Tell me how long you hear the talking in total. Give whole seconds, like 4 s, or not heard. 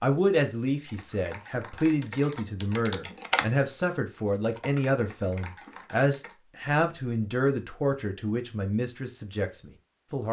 10 s.